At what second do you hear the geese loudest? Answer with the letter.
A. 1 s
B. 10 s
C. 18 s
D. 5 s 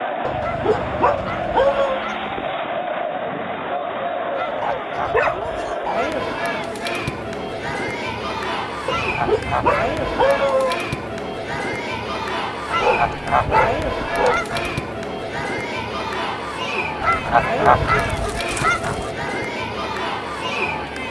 C.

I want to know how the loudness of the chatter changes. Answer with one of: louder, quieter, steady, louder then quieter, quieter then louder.
steady.